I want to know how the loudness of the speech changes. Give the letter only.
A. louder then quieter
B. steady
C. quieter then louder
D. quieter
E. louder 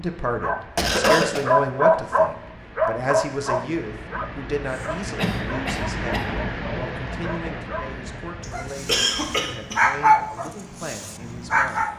D.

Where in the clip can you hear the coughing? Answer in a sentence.
The coughing can be heard from 0.8 to 1.4 s, from 5.2 to 6.3 s and from 8.4 to 9.8 s.